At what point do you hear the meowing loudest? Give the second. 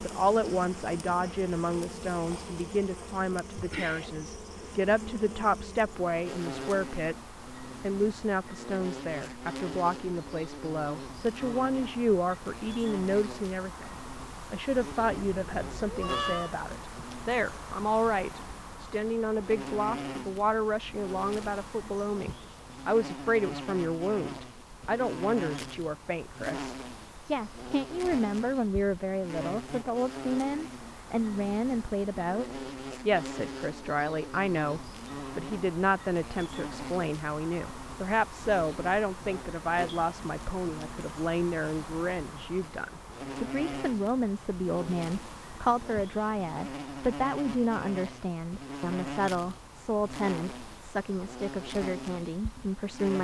16 s.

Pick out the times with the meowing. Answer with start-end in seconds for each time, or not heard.
15.0-16.6.